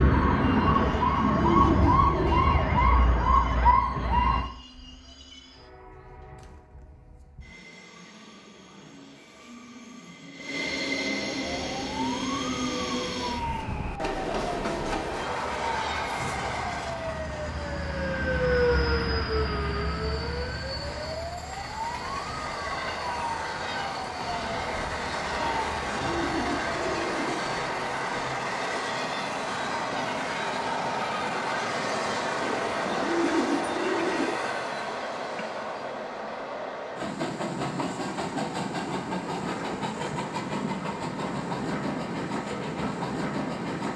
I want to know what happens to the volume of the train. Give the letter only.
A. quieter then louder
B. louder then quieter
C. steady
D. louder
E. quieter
D.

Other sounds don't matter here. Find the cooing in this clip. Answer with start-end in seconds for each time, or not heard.
0.7-2.5, 25.4-27.4, 32.4-34.4.